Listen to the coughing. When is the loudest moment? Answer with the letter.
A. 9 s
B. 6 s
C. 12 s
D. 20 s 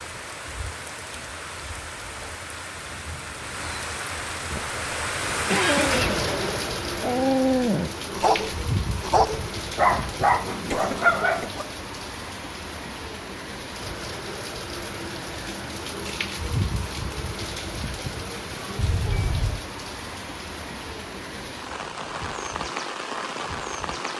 B.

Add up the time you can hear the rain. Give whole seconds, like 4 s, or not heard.
24 s.